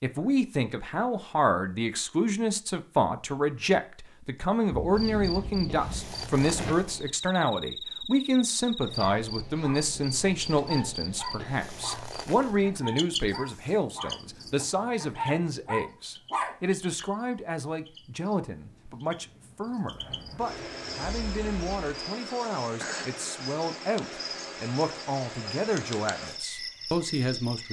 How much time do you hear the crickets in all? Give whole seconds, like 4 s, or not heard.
23 s.